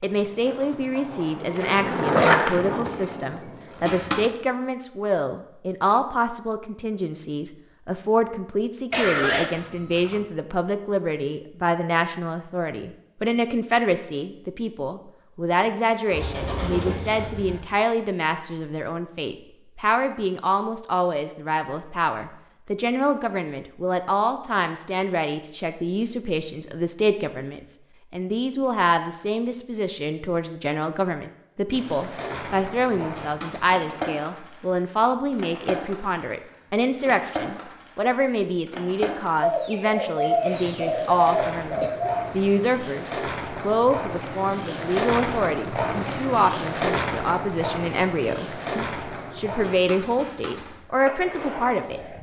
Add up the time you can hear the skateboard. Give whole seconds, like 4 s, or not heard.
25 s.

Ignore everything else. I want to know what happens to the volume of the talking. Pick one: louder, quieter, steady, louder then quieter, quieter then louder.
steady.